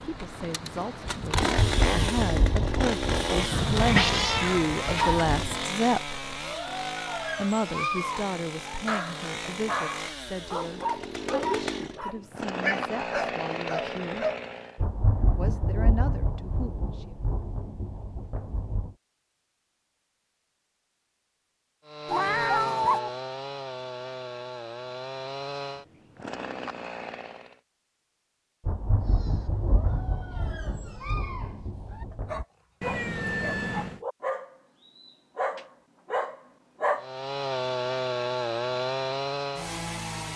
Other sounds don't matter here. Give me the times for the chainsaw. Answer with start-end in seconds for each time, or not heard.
0.0-14.8, 21.9-27.6, 37.0-40.3.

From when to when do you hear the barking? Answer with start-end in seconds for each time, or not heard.
6.4-14.4, 29.1-37.0.